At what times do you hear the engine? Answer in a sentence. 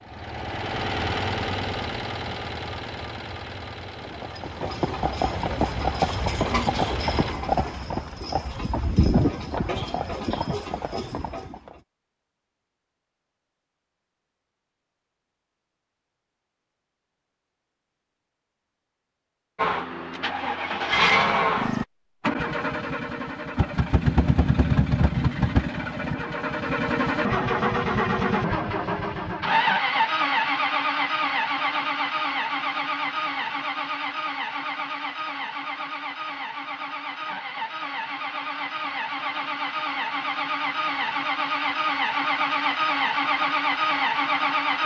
The engine can be heard from 0.0 to 7.3 s and from 19.6 to 44.8 s.